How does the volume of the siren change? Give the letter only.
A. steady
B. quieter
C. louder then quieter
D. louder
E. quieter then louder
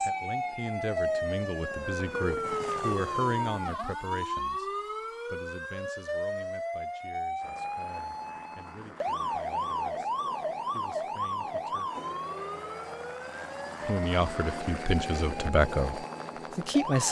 B.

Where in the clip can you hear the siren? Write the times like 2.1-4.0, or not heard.
0.0-17.0.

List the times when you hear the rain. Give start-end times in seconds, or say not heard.
not heard.